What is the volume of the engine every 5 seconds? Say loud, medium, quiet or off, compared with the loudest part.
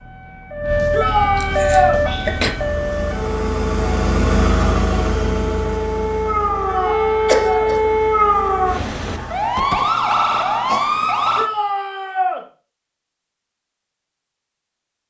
loud, medium, off.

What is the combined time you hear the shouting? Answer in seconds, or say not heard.
3 s.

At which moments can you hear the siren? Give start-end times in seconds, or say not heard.
0.0-11.5.